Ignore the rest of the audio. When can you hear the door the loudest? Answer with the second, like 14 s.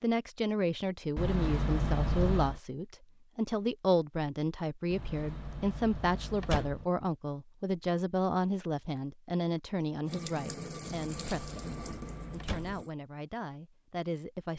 2 s.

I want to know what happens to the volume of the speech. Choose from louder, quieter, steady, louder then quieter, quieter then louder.
quieter.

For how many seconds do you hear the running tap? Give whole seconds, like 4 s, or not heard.
3 s.